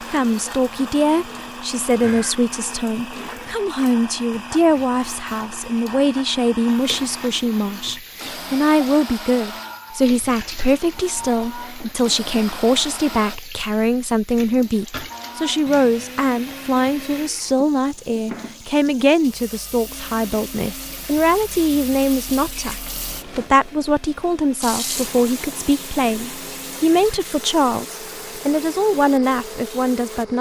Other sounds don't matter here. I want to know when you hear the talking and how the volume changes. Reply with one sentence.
The talking can be heard from 0.0 to 30.3 s, at a steady volume.